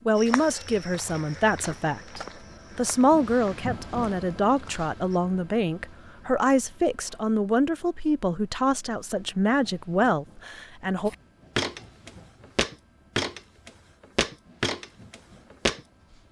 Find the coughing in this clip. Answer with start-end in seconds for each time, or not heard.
not heard.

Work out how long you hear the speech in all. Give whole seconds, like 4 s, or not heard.
11 s.